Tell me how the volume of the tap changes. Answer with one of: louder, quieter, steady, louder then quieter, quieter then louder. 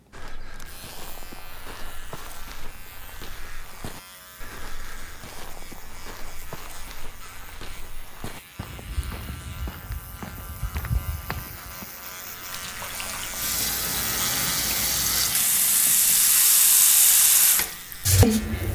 louder.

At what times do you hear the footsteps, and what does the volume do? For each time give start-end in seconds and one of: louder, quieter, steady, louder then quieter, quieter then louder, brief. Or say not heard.
0.1-11.8 louder.